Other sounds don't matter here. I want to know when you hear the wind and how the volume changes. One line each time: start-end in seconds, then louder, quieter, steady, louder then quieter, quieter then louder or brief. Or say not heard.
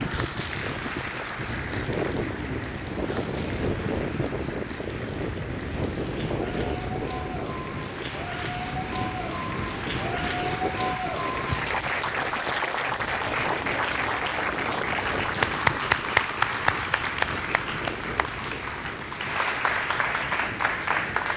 0.0-21.3 quieter.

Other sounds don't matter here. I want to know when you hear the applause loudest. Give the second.
16 s.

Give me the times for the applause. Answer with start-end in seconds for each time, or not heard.
0.0-21.3.